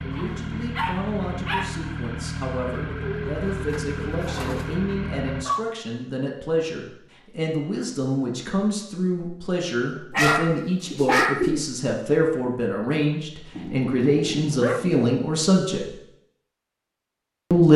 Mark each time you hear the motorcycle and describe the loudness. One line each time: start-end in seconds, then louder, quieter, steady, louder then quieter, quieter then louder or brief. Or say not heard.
0.0-5.5 steady.